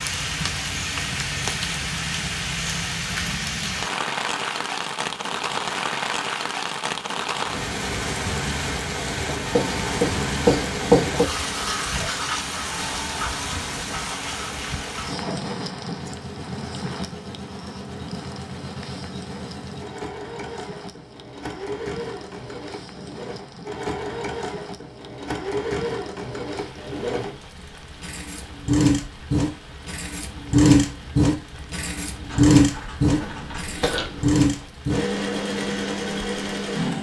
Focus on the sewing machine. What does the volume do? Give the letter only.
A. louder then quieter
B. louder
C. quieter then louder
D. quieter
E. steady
B.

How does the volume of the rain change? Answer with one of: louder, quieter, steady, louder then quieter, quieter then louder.
quieter.